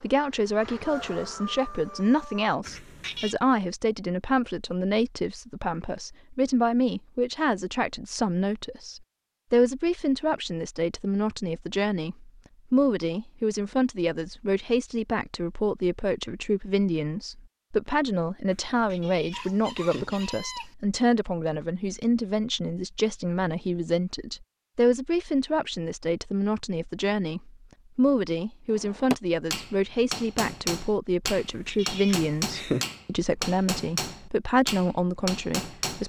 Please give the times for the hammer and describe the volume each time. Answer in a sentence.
You can hear the hammer from 28.7 to 36.0 s, at a steady volume.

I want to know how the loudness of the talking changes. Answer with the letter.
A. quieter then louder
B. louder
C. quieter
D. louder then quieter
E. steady
E.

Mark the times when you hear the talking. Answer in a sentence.
You can hear the talking from 0.0 to 36.0 s.